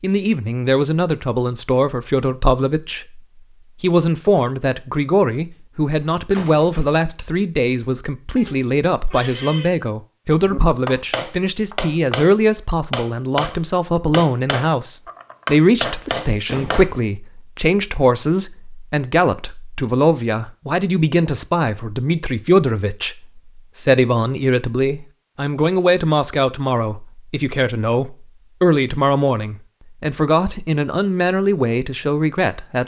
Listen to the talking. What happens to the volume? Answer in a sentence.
The loudness of the talking stays about the same.